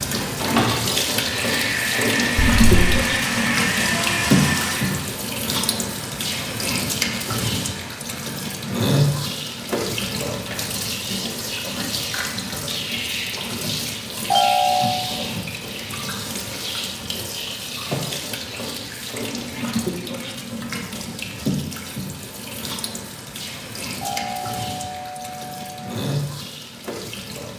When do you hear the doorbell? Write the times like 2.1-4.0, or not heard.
2.4-2.8, 14.3-15.1, 24.0-25.9.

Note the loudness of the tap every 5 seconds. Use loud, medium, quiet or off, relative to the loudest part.
loud, loud, medium, medium, medium, medium.